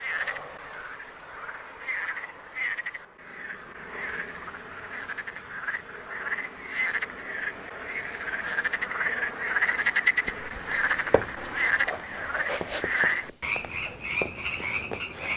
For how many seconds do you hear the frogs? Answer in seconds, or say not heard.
15 s.